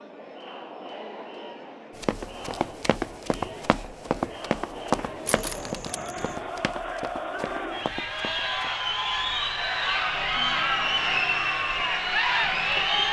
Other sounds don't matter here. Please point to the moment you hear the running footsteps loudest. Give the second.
5 s.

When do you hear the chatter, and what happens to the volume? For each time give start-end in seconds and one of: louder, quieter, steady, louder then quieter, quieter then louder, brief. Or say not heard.
0.0-13.0 louder.